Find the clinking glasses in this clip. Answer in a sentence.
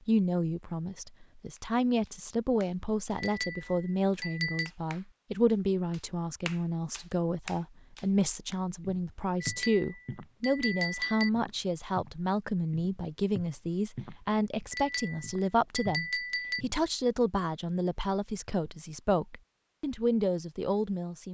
You can hear the clinking glasses from 3.1 to 4.7 s, from 9.4 to 11.3 s and from 14.7 to 16.6 s.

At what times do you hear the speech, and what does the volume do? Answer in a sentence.
The speech can be heard from 0.1 to 21.2 s, at a steady volume.